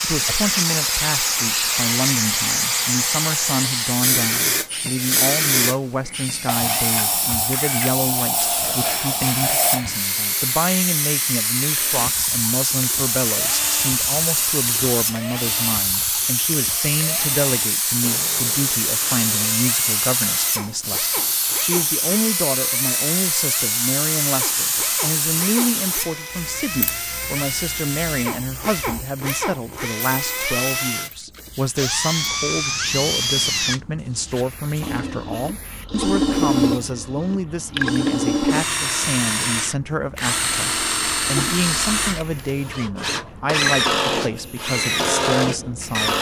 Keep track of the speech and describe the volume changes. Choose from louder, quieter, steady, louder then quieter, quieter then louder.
steady.